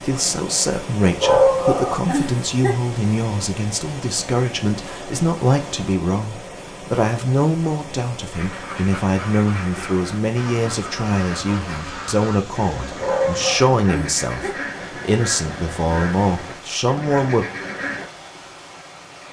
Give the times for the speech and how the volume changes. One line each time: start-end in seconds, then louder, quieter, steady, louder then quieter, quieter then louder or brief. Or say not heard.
0.0-17.4 steady.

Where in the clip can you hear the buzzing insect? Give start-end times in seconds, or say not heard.
not heard.